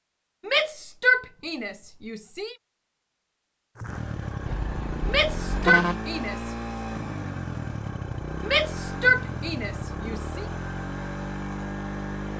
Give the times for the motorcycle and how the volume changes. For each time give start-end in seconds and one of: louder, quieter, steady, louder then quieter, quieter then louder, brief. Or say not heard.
3.8-12.3 steady.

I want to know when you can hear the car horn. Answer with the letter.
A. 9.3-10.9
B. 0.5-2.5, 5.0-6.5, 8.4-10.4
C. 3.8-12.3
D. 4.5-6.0
D.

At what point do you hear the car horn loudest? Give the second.
6 s.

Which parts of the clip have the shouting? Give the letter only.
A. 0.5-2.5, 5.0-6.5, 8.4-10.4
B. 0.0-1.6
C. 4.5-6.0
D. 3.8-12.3
A.